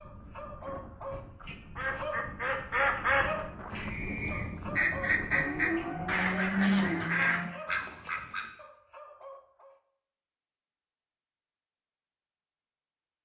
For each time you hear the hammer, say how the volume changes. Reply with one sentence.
The hammer can't be heard in this clip.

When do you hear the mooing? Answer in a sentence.
You can hear the mooing from 5.3 to 7.6 s.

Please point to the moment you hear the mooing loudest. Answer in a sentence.
The volume of the mooing peaks at 7 seconds.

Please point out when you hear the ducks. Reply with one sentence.
You can hear the ducks from 1.8 to 8.4 s.